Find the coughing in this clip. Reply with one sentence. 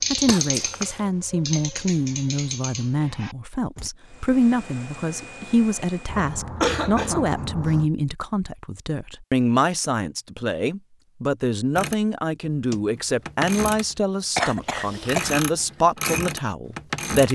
You can hear the coughing from 0.2 to 1.0 s, from 6.0 to 7.9 s and from 14.3 to 15.4 s.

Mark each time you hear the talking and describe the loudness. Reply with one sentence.
You can hear the talking from 0.1 to 17.3 s, at a steady volume.